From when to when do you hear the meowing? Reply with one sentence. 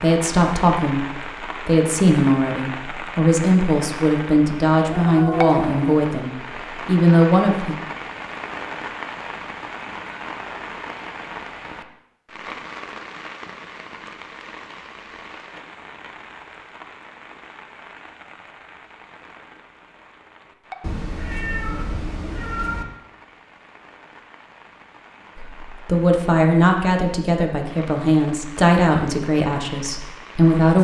The meowing can be heard from 4.7 to 6.0 s and from 20.8 to 22.9 s.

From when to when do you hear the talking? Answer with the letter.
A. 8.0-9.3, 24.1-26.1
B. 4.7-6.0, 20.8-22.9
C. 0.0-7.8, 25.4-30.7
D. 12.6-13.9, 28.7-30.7
C.